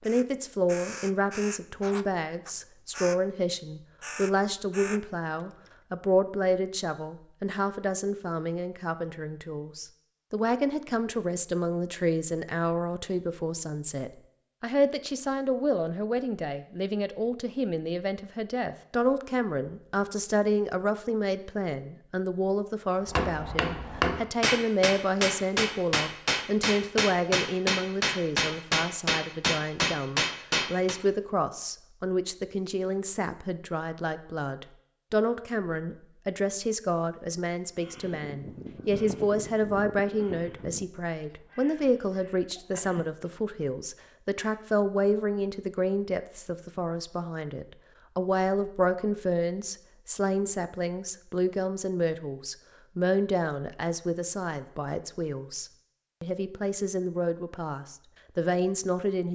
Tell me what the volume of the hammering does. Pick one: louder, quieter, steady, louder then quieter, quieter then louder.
steady.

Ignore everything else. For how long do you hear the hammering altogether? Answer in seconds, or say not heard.
8 s.